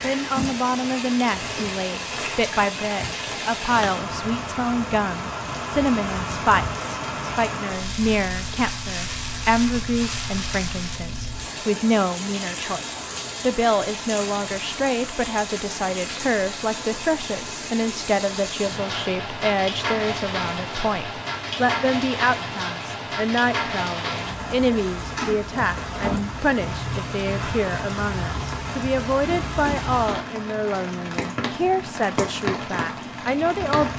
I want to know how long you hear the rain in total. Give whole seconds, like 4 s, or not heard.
34 s.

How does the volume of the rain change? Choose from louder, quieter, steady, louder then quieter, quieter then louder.
steady.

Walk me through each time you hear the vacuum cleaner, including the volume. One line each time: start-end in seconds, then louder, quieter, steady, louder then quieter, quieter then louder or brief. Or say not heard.
not heard.